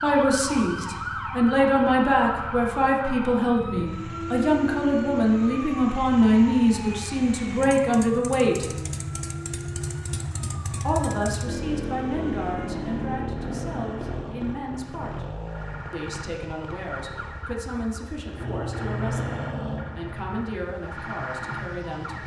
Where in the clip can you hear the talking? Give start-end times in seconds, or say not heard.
0.0-8.7, 10.8-15.2, 15.9-22.2.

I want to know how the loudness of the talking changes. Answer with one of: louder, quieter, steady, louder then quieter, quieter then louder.
quieter.